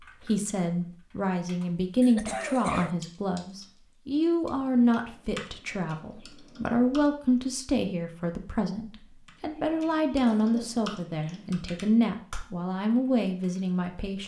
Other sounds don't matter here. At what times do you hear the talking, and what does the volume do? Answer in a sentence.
The talking can be heard from 0.0 to 14.2 s, at a steady volume.